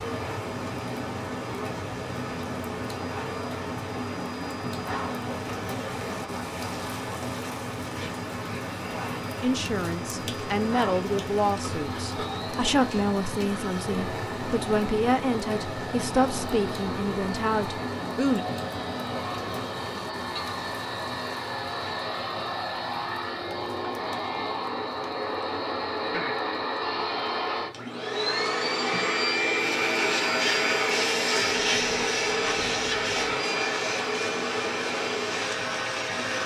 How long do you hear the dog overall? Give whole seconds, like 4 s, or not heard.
not heard.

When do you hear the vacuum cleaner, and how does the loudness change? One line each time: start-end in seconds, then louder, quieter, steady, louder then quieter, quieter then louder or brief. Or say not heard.
0.0-36.4 louder.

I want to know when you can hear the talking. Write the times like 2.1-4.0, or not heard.
9.4-18.4.